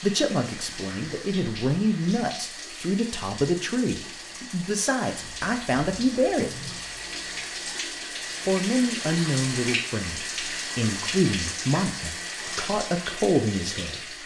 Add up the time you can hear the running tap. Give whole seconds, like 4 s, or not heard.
14 s.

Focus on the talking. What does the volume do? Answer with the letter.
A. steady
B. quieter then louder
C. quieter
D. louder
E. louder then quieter
A.